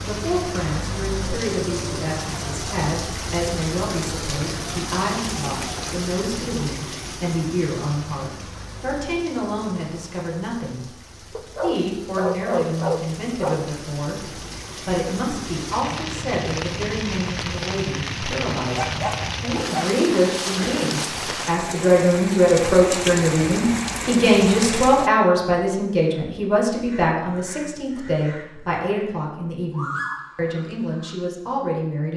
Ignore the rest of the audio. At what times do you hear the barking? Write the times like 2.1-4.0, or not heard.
11.3-13.7, 18.7-20.1.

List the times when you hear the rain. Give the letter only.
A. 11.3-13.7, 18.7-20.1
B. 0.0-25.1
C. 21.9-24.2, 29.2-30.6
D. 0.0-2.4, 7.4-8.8
B.